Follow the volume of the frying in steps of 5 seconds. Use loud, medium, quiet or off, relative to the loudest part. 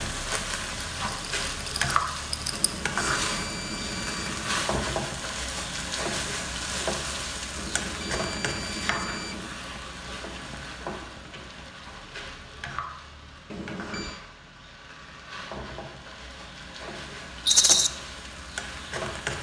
loud, loud, medium, medium.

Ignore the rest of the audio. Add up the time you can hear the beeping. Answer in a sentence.
The beeping can be heard for 5 seconds in total.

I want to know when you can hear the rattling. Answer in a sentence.
You can hear the rattling from 1.6 to 2.7 s and from 17.4 to 17.9 s.